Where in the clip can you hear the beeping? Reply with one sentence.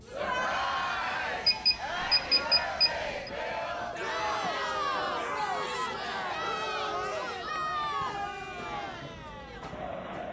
You can hear the beeping from 1.4 to 3.3 s and from 7.8 to 8.2 s.